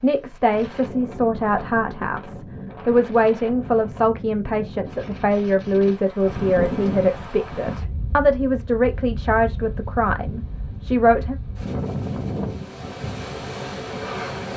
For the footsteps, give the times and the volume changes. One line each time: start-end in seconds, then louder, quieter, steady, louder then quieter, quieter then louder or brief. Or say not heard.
not heard.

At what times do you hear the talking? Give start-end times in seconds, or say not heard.
0.0-11.3.